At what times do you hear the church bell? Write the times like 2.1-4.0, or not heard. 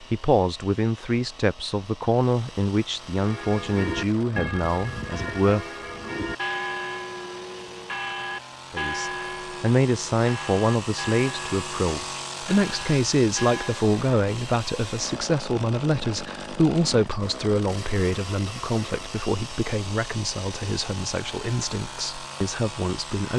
3.1-13.9.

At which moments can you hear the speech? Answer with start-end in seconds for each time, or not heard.
0.0-6.2, 8.7-23.3.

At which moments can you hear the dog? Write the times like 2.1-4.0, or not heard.
not heard.